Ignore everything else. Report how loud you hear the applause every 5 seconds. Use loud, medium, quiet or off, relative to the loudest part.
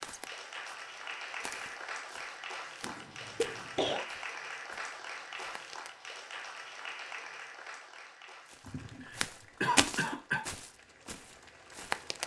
loud, loud, quiet.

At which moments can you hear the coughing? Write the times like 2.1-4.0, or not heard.
2.8-4.0, 8.7-10.4.